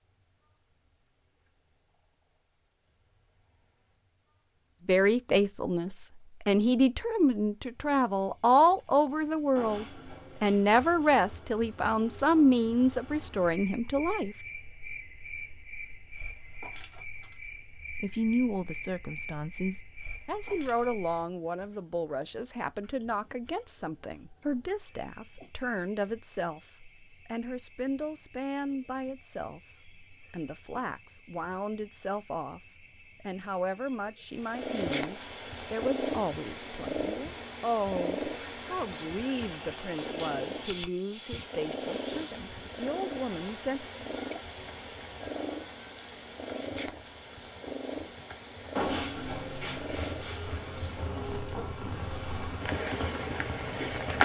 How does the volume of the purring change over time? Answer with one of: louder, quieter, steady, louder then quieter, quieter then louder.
quieter.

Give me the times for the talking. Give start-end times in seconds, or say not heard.
4.8-14.3, 18.0-43.9.